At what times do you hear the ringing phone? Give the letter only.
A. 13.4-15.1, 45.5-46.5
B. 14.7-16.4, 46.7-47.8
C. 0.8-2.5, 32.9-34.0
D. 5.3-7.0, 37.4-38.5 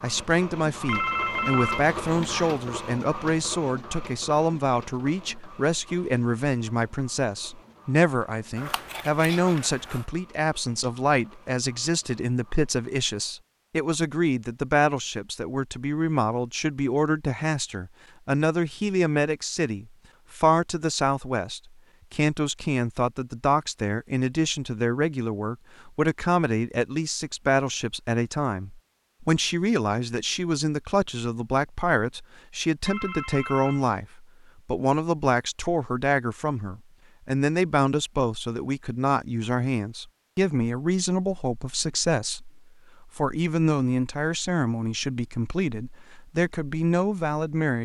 C.